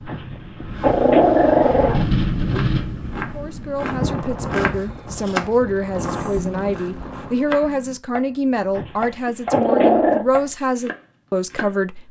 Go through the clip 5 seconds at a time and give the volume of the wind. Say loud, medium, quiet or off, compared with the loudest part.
loud, medium, off.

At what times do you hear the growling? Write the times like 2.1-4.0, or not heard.
0.1-1.9, 8.8-10.2.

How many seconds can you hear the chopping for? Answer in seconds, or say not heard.
10 s.